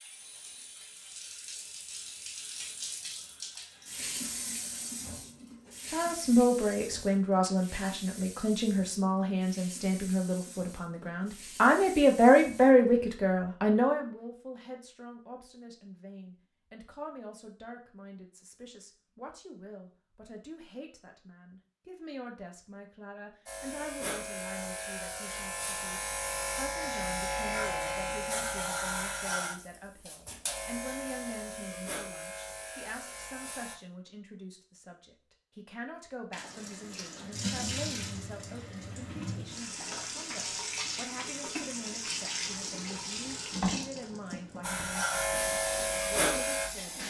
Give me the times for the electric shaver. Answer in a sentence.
The electric shaver can be heard from 23.4 to 33.8 s and from 44.6 to 47.0 s.